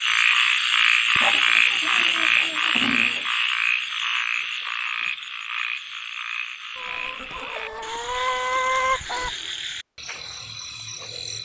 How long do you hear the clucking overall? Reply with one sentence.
The clucking can be heard for 5 seconds in total.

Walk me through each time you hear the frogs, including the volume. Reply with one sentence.
The frogs can be heard from 0.0 to 11.4 s, getting quieter.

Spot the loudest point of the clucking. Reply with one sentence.
The volume of the clucking peaks at 9 seconds.